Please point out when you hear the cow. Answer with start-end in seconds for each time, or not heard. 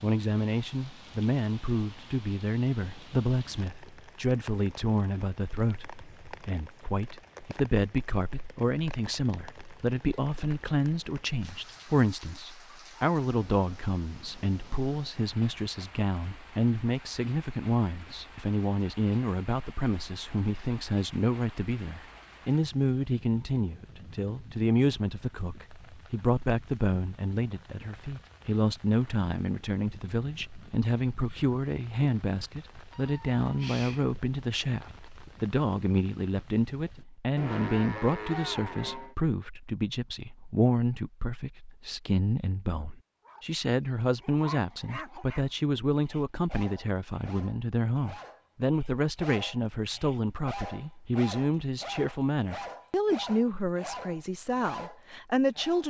37.4-39.1.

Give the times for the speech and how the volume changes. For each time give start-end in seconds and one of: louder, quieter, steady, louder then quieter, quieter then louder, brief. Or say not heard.
0.0-55.8 steady.